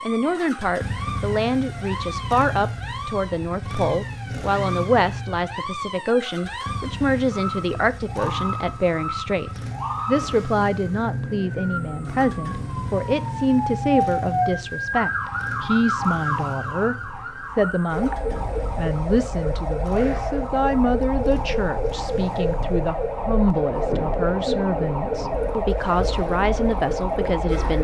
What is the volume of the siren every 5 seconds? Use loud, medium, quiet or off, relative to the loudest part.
medium, medium, loud, loud, loud, loud.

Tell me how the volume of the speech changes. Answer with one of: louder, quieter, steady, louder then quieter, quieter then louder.
steady.